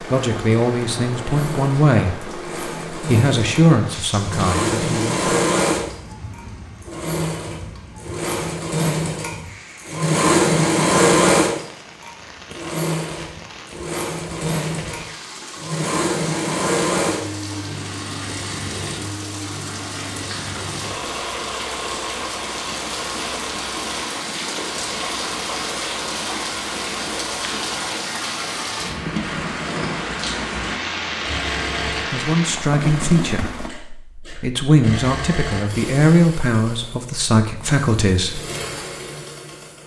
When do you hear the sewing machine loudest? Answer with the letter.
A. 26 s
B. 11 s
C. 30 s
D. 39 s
B.